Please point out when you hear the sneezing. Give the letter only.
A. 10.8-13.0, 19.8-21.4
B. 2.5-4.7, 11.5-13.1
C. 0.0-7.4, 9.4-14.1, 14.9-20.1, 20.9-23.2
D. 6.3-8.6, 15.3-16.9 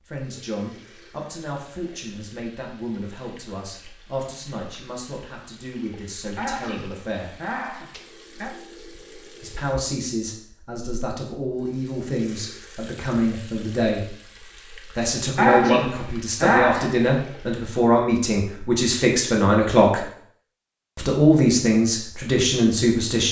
D.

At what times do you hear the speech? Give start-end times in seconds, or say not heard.
0.0-7.4, 9.4-14.1, 14.9-20.1, 20.9-23.2.